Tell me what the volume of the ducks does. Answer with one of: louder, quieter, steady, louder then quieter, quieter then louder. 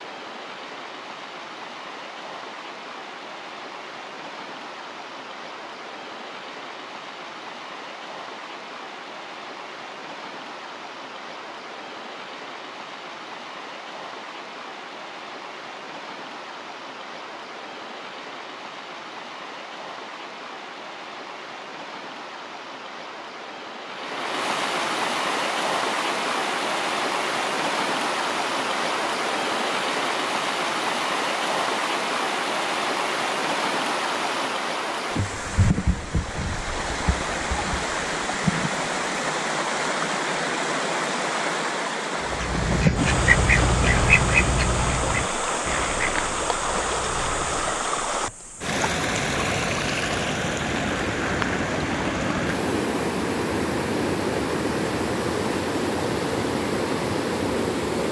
quieter.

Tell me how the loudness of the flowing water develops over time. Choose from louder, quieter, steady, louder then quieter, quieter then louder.
louder.